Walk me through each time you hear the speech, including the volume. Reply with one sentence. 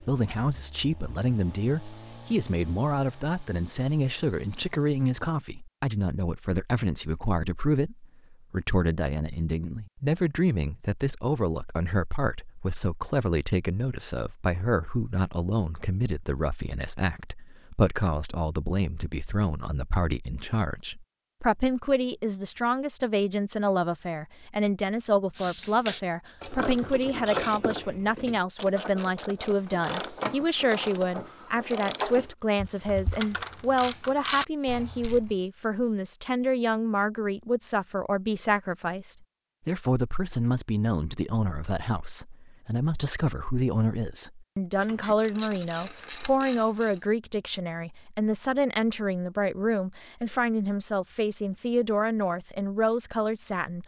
The speech can be heard from 0.0 to 53.8 s, at a steady volume.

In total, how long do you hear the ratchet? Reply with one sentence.
The ratchet can be heard for 12 seconds in total.